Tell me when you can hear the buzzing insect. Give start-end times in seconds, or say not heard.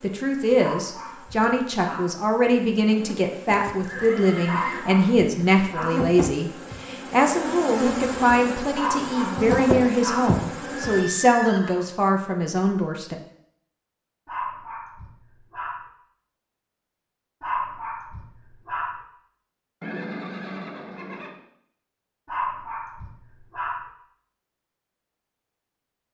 0.0-11.1.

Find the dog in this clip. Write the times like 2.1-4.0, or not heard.
0.6-2.1, 4.5-6.0, 8.8-10.3, 14.2-15.9, 17.4-19.0, 22.2-23.9.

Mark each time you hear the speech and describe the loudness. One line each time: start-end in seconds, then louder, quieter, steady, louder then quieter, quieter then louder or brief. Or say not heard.
0.0-13.2 steady.